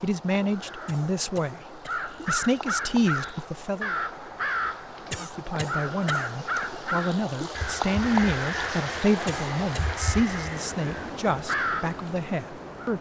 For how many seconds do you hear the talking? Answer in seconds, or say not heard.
12 s.